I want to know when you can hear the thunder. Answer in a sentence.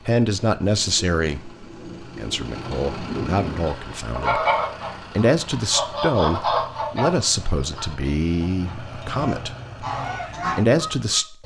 The thunder can be heard from 0.6 to 3.8 s.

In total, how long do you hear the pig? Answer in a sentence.
The pig can't be heard in this clip.